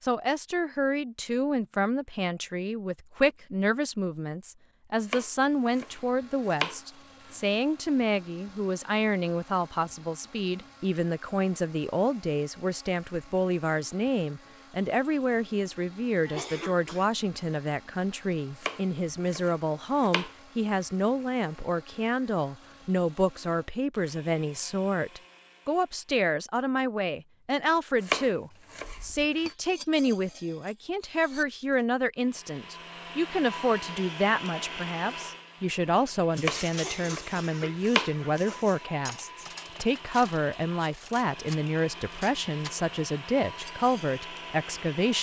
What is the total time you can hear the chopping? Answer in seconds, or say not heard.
8 s.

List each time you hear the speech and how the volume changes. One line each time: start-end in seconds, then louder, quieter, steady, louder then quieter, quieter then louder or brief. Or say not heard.
0.0-45.1 steady.